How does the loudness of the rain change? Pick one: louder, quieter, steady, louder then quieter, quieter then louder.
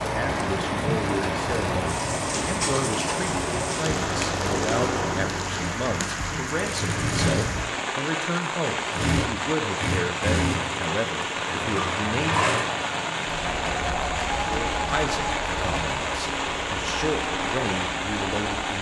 steady.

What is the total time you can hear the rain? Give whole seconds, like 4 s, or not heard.
19 s.